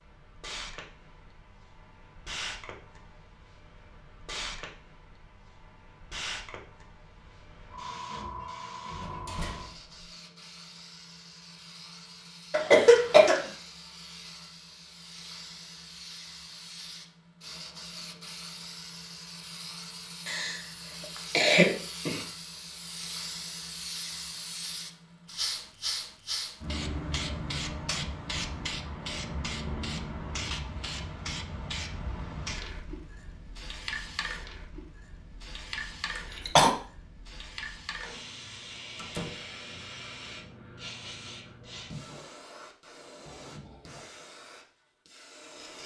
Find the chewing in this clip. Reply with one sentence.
The chewing can't be heard in this clip.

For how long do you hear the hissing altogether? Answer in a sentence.
The hissing can be heard for 46 seconds in total.